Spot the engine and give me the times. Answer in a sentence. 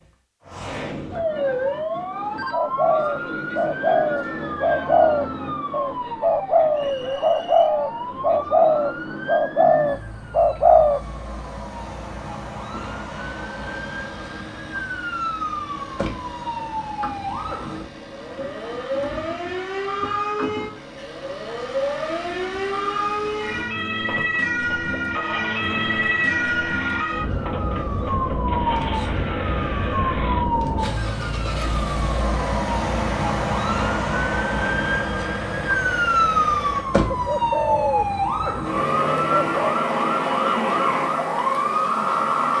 The engine can be heard from 12.7 to 36.9 s.